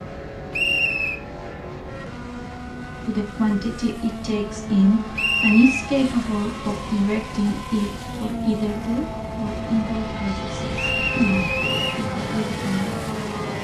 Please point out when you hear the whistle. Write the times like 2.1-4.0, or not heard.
0.5-1.2, 5.2-5.8, 10.8-12.1.